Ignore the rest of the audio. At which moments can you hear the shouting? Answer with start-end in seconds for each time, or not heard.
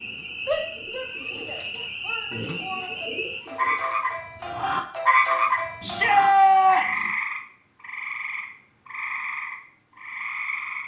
0.5-3.1, 5.8-7.0.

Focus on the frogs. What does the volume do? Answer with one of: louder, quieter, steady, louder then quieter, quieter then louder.
louder then quieter.